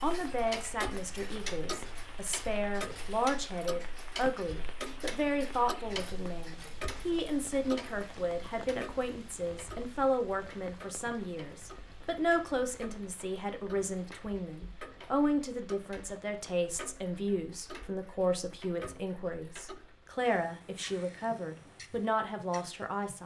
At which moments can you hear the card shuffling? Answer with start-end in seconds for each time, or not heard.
not heard.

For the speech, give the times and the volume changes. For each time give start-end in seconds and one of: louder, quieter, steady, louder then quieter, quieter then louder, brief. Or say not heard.
0.0-23.2 steady.